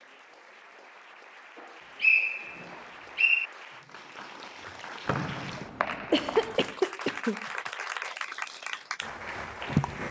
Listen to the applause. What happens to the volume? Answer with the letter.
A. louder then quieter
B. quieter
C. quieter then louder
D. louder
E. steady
D.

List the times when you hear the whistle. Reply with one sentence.
The whistle can be heard from 2.0 to 3.5 s and from 5.0 to 6.5 s.